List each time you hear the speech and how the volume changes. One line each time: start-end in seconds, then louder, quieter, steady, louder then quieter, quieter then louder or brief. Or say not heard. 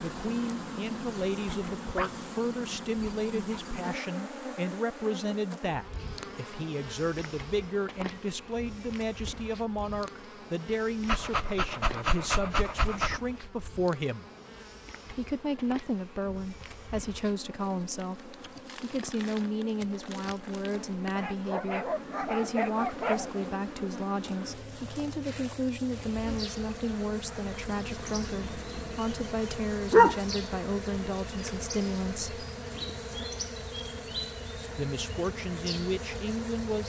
0.0-14.2 steady
15.1-32.4 steady
34.8-36.8 brief.